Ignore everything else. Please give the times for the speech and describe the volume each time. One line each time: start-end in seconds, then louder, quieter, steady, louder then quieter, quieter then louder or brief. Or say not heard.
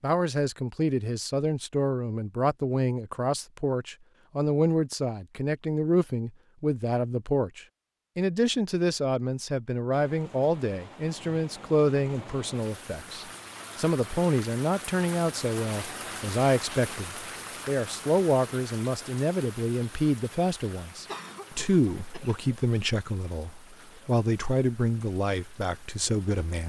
0.0-26.6 steady.